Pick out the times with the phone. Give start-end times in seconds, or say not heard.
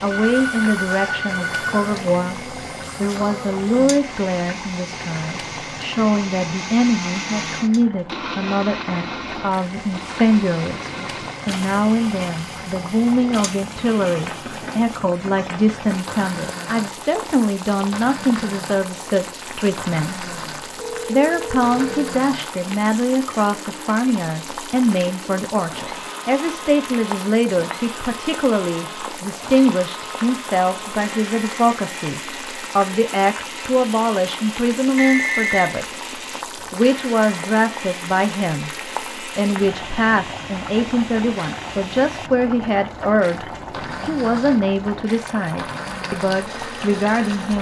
0.1-1.9, 20.8-22.1, 35.0-35.8.